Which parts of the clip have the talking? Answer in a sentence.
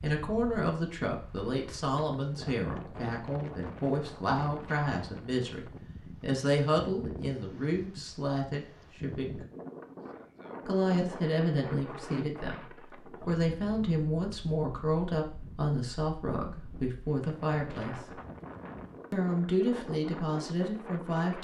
The talking can be heard from 0.0 to 9.4 s, from 10.7 to 18.2 s and from 19.1 to 21.4 s.